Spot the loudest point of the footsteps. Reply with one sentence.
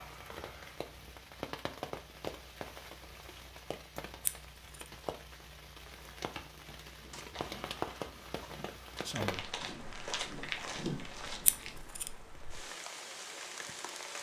The loudest moment of the footsteps is at 11 seconds.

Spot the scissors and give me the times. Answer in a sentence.
The scissors can be heard from 4.2 to 4.8 s and from 11.4 to 12.1 s.